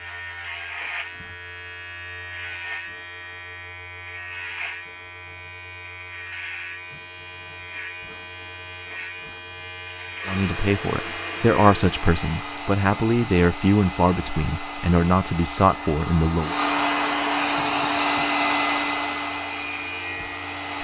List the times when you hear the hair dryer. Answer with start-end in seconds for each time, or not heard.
10.2-20.7.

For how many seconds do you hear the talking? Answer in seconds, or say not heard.
6 s.